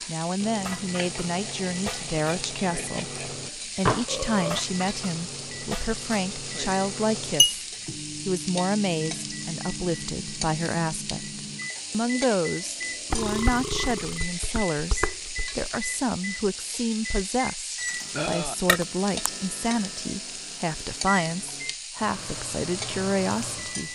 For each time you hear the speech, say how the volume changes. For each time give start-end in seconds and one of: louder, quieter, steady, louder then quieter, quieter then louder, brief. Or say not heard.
0.1-23.9 steady.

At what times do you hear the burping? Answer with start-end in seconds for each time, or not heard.
3.9-4.7, 13.1-14.2, 18.1-18.6.